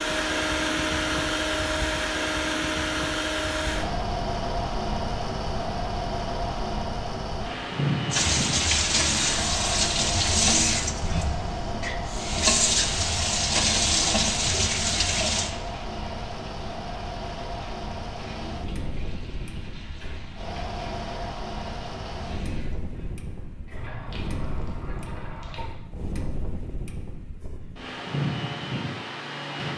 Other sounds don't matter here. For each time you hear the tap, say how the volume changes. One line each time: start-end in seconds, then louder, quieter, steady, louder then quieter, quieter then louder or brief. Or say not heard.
8.1-25.7 quieter.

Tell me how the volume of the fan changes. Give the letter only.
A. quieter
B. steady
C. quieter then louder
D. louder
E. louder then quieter
A.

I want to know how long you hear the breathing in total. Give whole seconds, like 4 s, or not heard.
not heard.